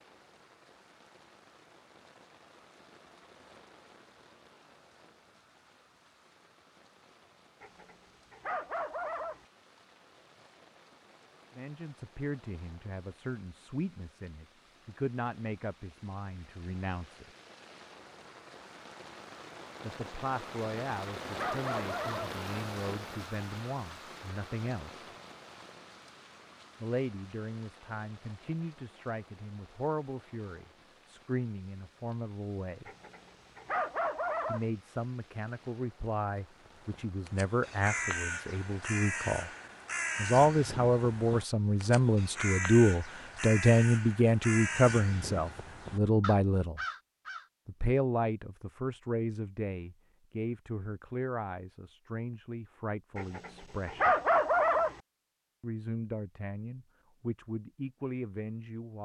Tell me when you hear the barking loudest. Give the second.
54 s.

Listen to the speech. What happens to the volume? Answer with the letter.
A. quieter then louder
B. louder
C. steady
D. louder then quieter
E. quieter
D.